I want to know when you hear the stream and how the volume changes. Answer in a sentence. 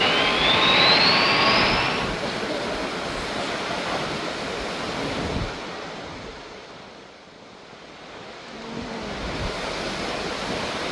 The stream can be heard from 0.0 to 10.8 s, getting quieter then louder.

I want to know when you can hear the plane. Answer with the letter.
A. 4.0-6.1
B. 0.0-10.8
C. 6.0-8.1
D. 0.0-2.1
D.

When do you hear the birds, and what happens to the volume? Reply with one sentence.
You can't hear the birds here.